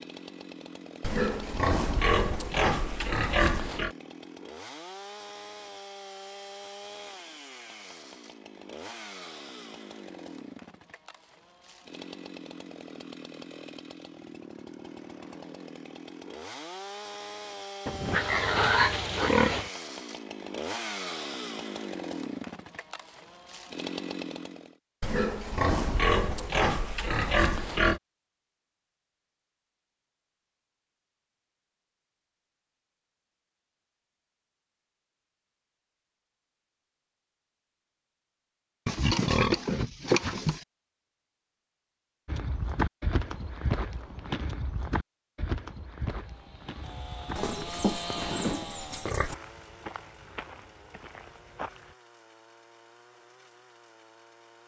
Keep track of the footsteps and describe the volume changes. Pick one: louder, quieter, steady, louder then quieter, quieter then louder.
quieter.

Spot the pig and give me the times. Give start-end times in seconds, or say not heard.
1.0-3.9, 17.9-19.7, 25.0-28.0, 38.9-40.6, 47.4-49.4.